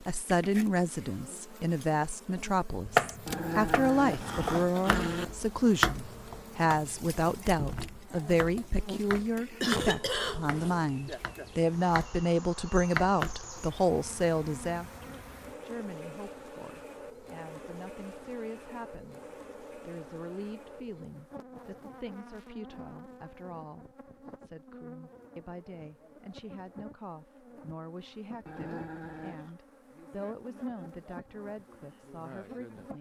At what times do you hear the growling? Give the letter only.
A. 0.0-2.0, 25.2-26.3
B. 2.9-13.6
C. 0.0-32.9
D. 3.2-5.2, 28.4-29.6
D.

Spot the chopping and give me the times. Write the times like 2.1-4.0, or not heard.
2.9-13.6.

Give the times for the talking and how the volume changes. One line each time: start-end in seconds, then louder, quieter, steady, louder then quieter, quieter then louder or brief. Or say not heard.
0.0-32.9 quieter.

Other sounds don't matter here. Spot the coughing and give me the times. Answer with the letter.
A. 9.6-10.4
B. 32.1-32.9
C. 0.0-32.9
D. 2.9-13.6
A.